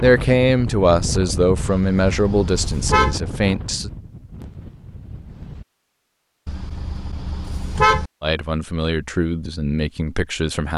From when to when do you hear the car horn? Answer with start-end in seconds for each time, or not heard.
1.6-3.2, 6.5-8.1.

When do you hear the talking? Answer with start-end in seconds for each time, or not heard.
0.0-3.9, 8.2-10.7.